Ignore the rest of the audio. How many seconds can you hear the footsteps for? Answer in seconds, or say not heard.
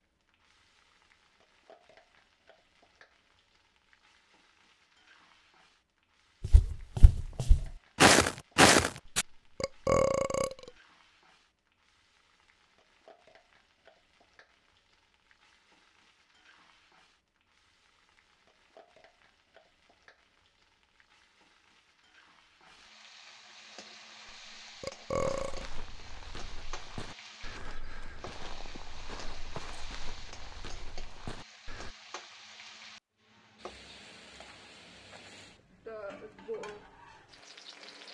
10 s.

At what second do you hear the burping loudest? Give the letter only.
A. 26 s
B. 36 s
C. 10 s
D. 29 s
C.